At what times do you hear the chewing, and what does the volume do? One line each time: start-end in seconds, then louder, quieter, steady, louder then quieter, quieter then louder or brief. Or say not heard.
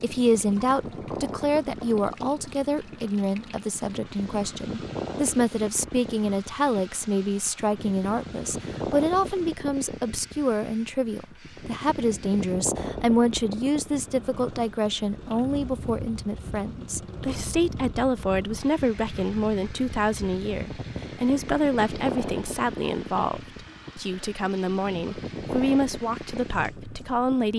not heard.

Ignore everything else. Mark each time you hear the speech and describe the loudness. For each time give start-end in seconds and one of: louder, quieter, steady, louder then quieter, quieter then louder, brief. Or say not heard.
0.0-27.5 steady.